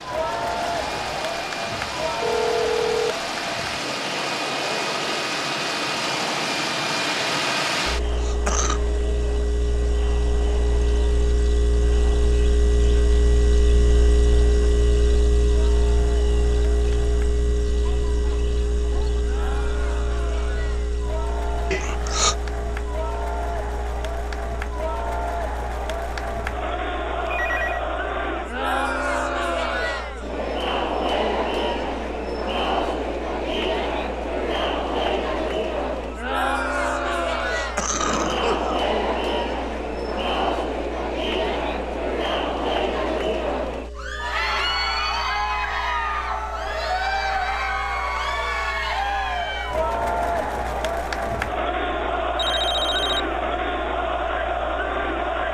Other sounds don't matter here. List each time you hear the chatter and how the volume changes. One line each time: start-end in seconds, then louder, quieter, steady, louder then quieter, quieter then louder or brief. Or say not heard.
0.0-55.5 quieter then louder.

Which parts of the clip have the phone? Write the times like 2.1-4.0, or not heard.
2.2-3.1, 27.2-27.9, 52.4-53.3.